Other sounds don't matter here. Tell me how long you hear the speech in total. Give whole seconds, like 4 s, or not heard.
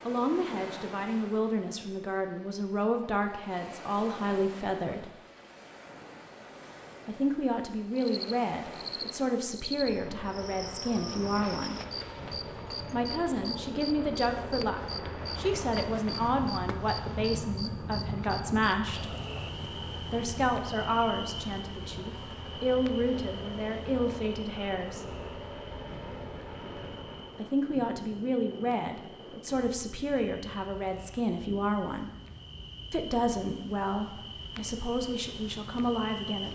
29 s.